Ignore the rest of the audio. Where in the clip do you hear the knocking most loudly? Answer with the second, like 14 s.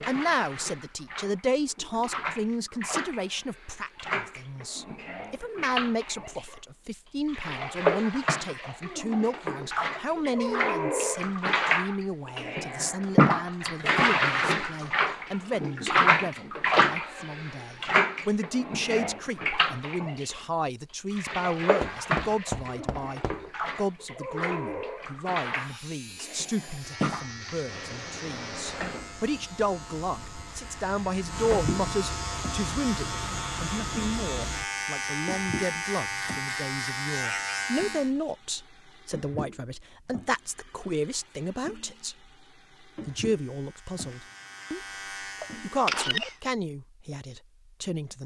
22 s.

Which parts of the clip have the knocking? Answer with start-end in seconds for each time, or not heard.
21.8-23.4.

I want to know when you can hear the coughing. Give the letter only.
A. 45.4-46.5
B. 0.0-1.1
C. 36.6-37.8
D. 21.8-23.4
A.